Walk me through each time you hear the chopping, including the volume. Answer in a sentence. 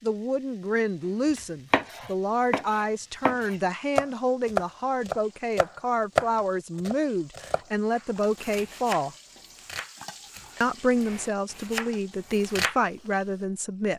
The chopping can be heard from 1.4 to 12.8 s, getting louder then quieter.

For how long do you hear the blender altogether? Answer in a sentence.
The blender can't be heard in this clip.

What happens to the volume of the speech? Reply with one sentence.
The volume of the speech stays about the same.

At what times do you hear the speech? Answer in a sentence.
You can hear the speech from 0.0 to 9.2 s and from 10.6 to 13.9 s.